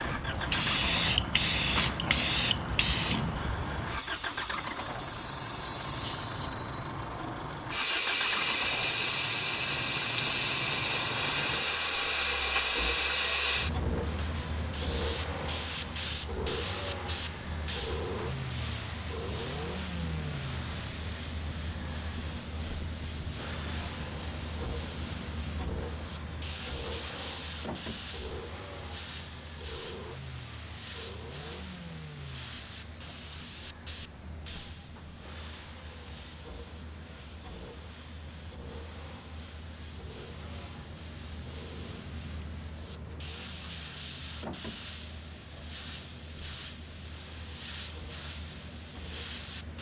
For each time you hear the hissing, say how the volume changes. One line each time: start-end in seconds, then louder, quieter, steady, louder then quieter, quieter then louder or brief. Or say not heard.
0.0-49.7 quieter.